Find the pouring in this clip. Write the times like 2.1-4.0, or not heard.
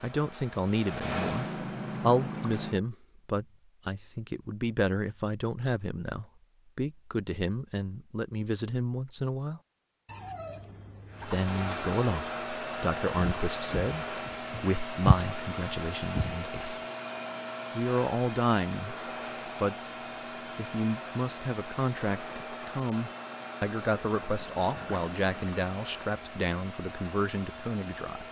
1.1-2.8, 10.1-11.9, 24.2-25.6.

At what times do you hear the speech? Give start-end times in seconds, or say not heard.
0.0-9.6, 11.2-16.8, 17.7-19.8, 20.6-28.2.